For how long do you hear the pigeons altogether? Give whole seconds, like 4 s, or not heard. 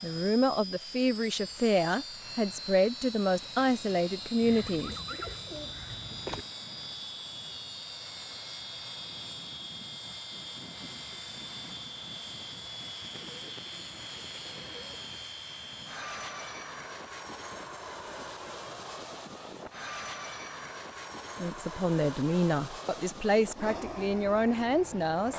4 s.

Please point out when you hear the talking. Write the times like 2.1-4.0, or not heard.
0.0-5.0, 21.4-25.3.